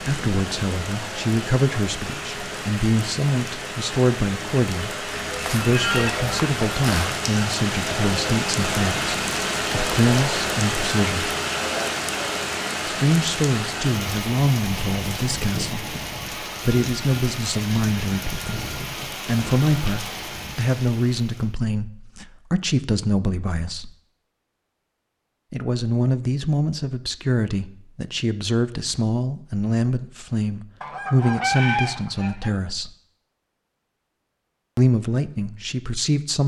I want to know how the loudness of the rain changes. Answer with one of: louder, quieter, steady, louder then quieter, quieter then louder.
louder then quieter.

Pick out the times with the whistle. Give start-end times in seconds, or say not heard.
not heard.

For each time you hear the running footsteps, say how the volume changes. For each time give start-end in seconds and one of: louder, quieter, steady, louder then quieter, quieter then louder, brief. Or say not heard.
not heard.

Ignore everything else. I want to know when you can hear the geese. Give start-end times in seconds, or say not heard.
5.1-7.1, 30.8-32.5.